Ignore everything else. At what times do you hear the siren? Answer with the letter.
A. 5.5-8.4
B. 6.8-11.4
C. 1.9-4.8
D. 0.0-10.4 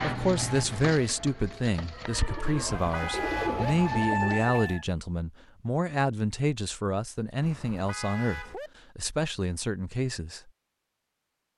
C.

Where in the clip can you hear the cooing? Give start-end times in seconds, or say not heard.
0.0-4.5.